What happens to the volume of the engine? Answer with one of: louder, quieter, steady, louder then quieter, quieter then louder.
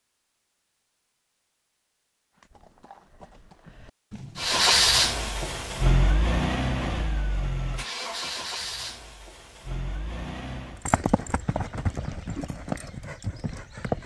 quieter.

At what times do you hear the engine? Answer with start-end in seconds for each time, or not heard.
4.3-10.8.